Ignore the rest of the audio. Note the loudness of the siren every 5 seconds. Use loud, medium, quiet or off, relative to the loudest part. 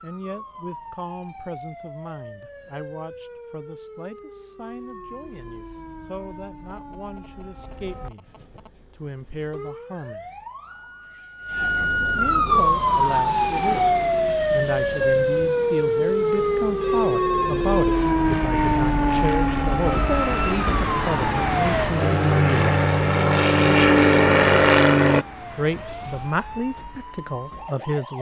quiet, quiet, loud, loud, loud, quiet.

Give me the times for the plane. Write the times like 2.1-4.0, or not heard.
12.5-25.2.